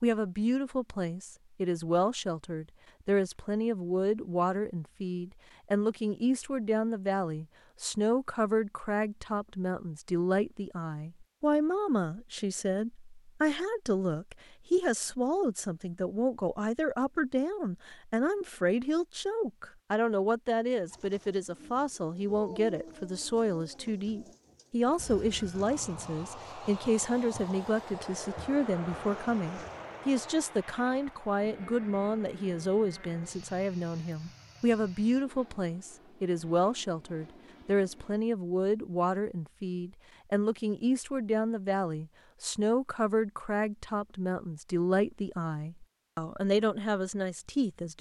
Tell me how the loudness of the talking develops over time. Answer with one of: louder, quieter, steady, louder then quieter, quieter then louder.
steady.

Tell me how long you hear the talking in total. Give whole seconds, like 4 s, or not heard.
48 s.